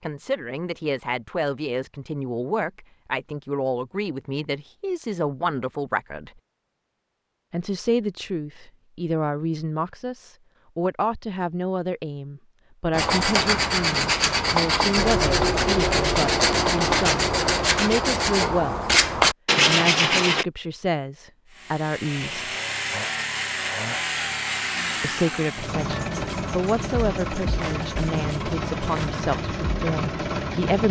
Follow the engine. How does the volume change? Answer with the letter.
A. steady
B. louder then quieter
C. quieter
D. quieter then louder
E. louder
A.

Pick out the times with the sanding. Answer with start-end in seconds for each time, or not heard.
12.9-20.4.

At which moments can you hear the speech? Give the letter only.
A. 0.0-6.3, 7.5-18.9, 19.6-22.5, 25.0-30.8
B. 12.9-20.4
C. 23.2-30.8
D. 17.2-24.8
A.